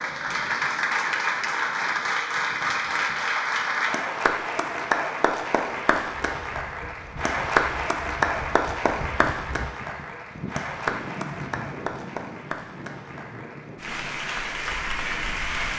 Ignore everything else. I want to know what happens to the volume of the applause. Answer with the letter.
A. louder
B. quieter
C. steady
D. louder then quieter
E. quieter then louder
B.